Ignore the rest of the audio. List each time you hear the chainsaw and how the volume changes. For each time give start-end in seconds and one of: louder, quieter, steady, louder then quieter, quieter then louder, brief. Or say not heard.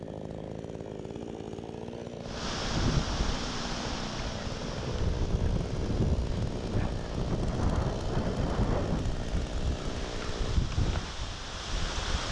0.0-10.6 steady.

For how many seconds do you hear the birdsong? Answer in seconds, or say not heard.
not heard.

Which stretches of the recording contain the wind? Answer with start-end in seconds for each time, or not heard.
2.2-12.2.